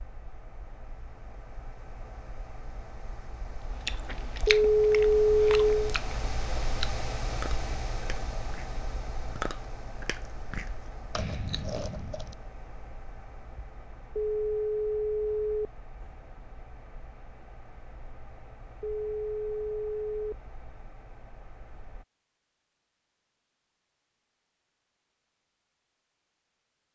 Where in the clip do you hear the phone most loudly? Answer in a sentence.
The volume of the phone peaks at 5 seconds.